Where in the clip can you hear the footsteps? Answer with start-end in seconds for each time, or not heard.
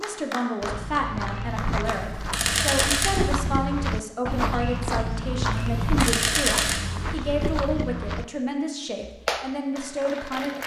0.6-8.2.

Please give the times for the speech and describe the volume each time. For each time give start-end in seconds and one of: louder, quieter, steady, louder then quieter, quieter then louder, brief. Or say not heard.
0.0-10.6 steady.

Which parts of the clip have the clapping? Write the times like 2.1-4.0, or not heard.
0.0-2.0, 9.1-10.6.